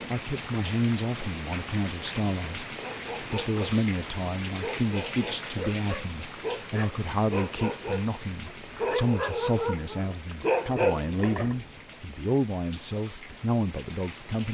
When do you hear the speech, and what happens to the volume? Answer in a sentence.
The speech can be heard from 0.1 to 14.4 s, at a steady volume.